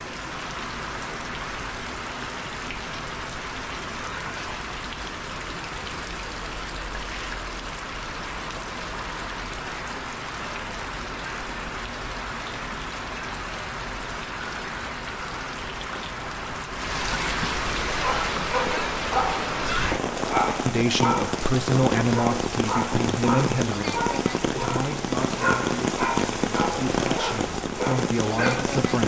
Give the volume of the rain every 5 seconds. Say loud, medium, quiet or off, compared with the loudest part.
medium, medium, medium, loud, loud, loud.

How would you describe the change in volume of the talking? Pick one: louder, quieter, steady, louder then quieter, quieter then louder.
quieter then louder.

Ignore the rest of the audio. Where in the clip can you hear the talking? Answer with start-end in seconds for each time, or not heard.
20.6-29.0.